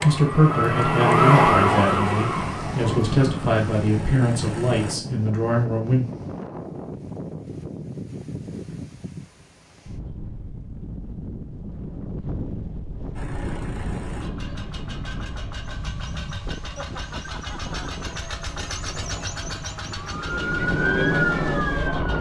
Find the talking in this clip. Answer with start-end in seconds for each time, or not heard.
0.0-6.0.